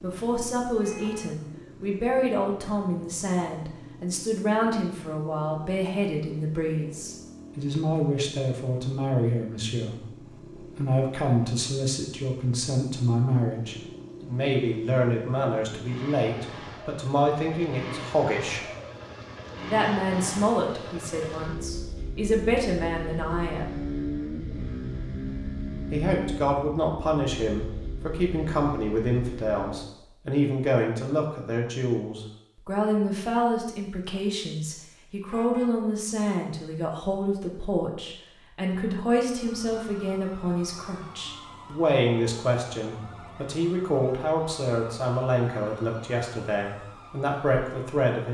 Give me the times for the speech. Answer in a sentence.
You can hear the speech from 0.0 to 18.6 s, from 19.7 to 23.8 s and from 25.9 to 48.2 s.